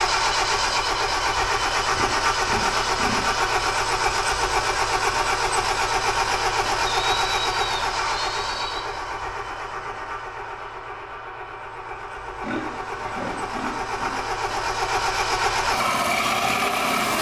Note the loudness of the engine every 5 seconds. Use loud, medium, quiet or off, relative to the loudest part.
loud, loud, medium, loud.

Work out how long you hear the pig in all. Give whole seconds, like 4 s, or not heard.
5 s.